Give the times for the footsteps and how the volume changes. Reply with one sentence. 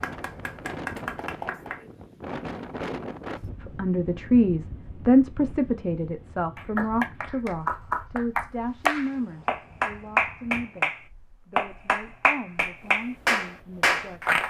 The footsteps can't be heard in this clip.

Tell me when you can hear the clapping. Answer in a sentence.
The clapping can be heard from 0.0 to 1.9 s and from 6.5 to 14.4 s.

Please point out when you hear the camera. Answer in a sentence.
The camera can't be heard in this clip.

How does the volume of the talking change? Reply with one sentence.
The loudness of the talking goes down.